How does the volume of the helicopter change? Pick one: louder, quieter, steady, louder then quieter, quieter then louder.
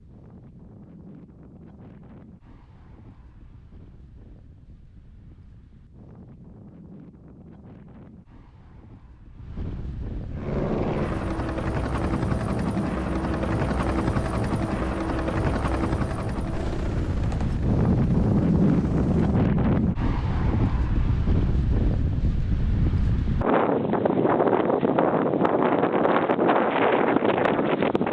quieter.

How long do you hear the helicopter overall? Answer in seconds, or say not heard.
9 s.